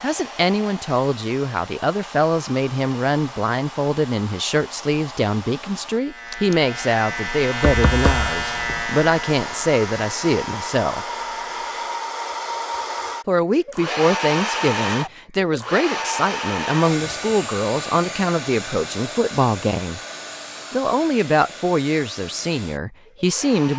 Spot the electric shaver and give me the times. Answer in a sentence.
You can hear the electric shaver from 5.8 to 12.0 s.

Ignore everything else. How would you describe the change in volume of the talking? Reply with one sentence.
The volume of the talking stays about the same.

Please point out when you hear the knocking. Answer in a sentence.
The knocking can be heard from 7.7 to 8.8 s.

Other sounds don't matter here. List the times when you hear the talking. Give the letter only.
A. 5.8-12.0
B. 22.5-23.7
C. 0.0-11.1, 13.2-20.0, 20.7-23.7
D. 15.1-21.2
C.